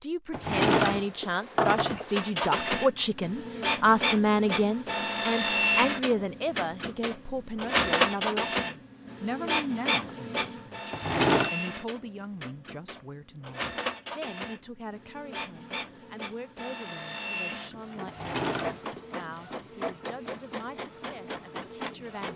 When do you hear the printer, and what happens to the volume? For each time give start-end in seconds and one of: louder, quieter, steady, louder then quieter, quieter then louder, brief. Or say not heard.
2.1-22.3 quieter.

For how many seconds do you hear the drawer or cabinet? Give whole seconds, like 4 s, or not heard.
3 s.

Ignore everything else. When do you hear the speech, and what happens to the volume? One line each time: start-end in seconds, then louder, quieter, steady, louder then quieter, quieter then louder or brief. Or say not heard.
0.0-22.3 quieter.